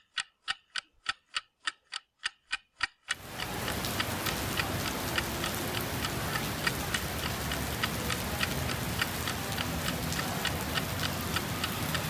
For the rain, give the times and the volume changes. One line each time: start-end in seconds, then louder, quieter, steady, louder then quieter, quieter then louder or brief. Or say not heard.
3.1-12.0 steady.